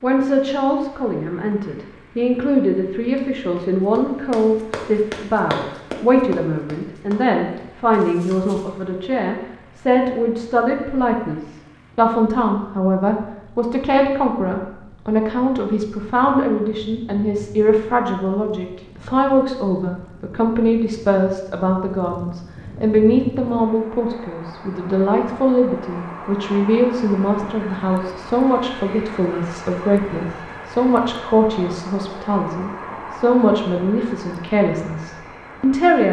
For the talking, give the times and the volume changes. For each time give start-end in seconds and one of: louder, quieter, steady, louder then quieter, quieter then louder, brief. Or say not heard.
0.0-36.0 steady.